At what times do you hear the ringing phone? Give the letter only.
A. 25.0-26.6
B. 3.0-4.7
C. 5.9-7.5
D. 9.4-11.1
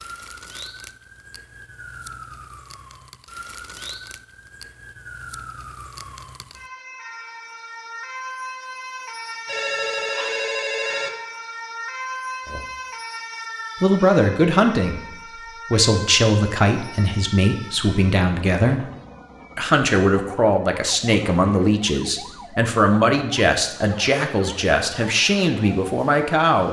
D.